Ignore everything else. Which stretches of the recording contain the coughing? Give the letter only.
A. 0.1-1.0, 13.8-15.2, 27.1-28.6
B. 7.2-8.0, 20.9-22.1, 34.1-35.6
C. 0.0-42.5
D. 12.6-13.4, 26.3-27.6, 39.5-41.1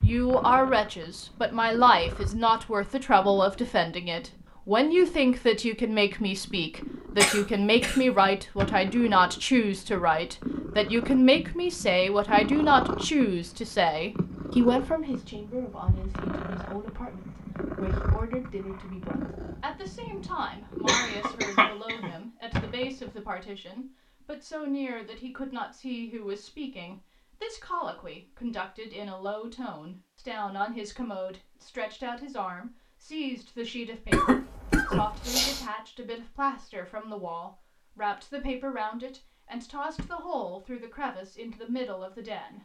B.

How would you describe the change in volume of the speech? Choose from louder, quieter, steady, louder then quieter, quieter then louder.
quieter.